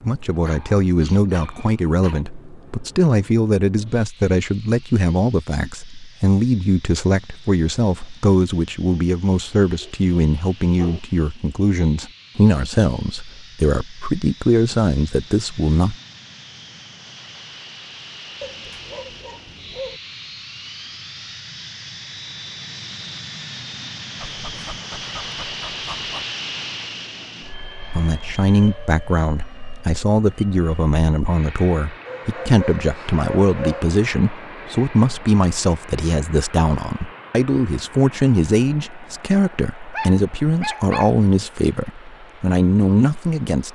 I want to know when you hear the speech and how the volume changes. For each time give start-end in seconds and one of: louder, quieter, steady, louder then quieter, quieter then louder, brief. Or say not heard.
0.0-15.9 steady
27.9-43.7 steady.